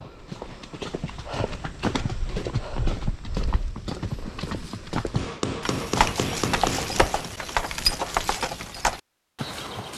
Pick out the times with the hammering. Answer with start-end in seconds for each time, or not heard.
5.1-7.0.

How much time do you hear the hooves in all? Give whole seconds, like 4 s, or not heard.
10 s.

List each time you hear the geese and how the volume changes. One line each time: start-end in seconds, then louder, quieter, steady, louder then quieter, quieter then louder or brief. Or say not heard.
not heard.